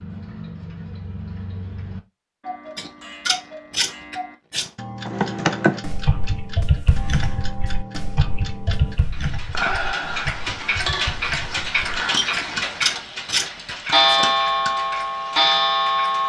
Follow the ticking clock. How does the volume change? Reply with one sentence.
The loudness of the ticking clock goes up.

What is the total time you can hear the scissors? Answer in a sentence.
You can hear the scissors for 4 seconds altogether.